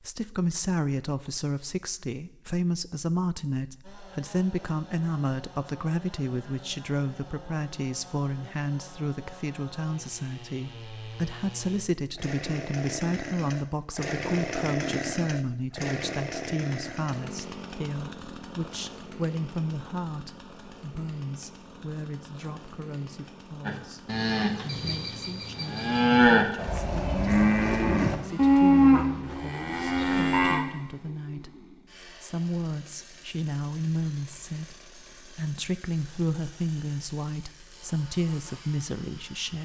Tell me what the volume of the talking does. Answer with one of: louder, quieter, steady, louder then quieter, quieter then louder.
quieter then louder.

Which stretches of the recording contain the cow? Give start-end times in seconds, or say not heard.
23.6-30.6.